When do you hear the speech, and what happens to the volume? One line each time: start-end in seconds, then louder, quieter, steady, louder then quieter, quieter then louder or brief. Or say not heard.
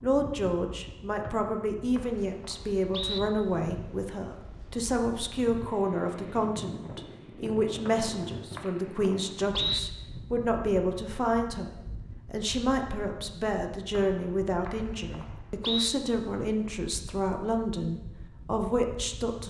0.0-19.4 steady.